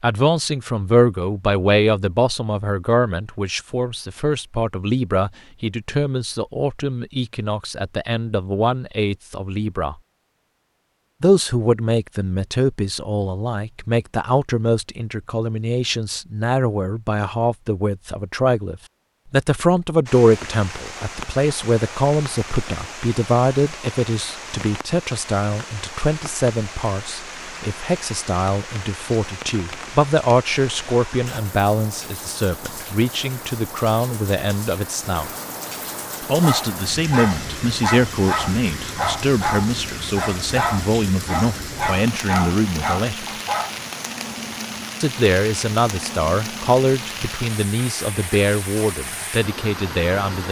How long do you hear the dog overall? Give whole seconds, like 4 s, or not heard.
7 s.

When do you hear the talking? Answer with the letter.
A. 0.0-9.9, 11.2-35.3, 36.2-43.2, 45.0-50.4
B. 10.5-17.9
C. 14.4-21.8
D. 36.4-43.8
A.